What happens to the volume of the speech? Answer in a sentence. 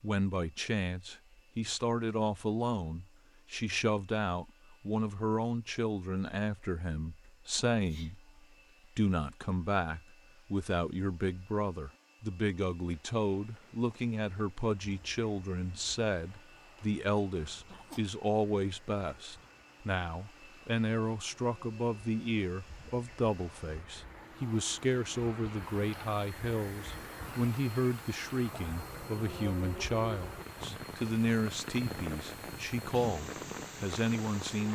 The volume of the speech stays about the same.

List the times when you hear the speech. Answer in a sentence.
The speech can be heard from 0.0 to 8.2 s and from 8.9 to 34.7 s.